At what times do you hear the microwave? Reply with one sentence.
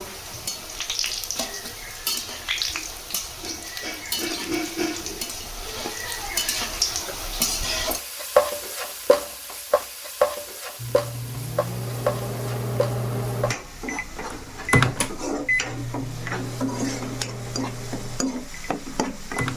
You can hear the microwave from 10.8 to 19.5 s.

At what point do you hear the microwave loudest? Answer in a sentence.
The loudest moment of the microwave is at 15 seconds.